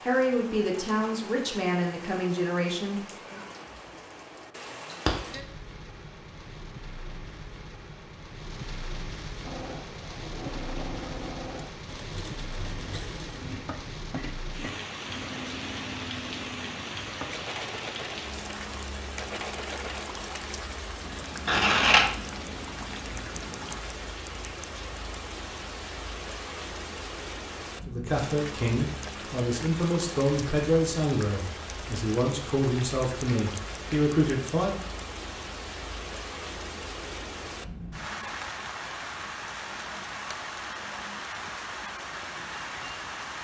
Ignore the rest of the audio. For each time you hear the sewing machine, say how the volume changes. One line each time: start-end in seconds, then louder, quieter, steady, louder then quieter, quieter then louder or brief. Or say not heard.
9.4-23.9 steady.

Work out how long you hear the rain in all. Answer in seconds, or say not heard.
43 s.